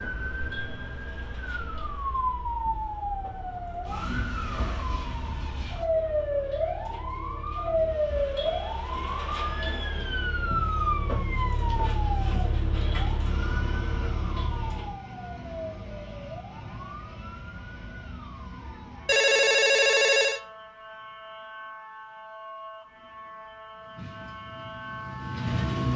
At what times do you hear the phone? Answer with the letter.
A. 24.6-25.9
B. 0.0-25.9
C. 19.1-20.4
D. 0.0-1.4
C.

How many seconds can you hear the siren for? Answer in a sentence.
You can hear the siren for 26 seconds altogether.